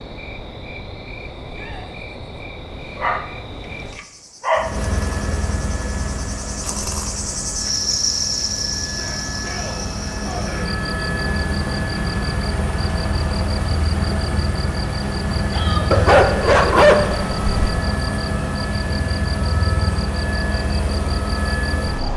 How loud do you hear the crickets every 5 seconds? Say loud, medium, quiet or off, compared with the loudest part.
medium, loud, medium, medium, medium.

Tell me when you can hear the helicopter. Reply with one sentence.
You can hear the helicopter from 4.5 to 22.1 s.